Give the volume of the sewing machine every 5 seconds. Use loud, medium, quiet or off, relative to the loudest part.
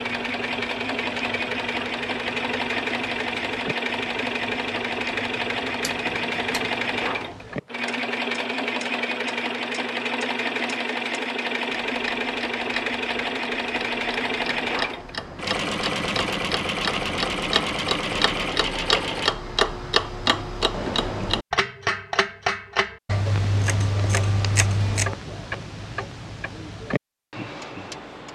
loud, loud, loud, loud, off, off.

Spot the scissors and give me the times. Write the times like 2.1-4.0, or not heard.
5.8-6.7, 23.1-25.1.